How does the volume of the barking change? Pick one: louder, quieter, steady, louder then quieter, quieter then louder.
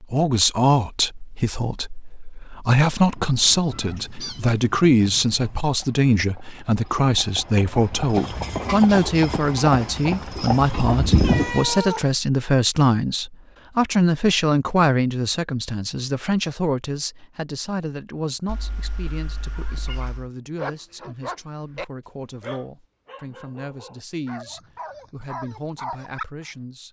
quieter then louder.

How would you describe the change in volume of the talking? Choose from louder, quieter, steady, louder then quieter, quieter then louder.
quieter.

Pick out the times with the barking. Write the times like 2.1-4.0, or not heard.
20.6-26.2.